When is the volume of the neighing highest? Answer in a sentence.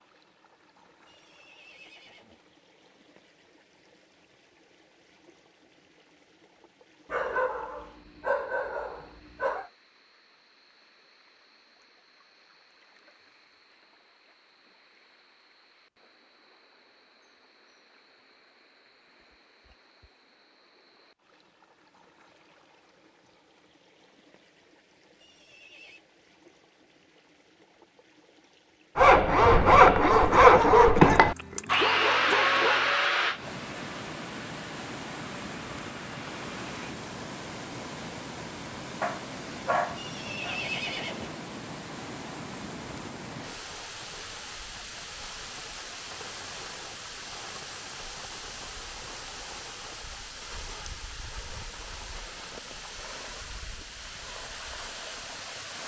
The loudest moment of the neighing is at 41 seconds.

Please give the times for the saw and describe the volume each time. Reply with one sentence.
The saw can be heard from 28.9 to 37.0 s, getting quieter.